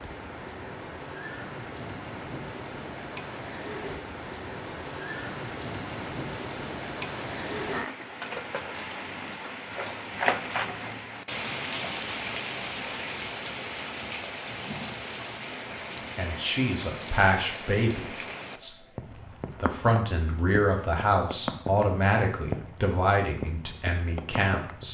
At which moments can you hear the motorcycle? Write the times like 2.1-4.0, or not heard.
not heard.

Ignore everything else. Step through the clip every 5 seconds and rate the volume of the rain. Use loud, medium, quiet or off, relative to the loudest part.
medium, loud, loud, medium, medium.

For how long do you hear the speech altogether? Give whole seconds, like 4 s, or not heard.
8 s.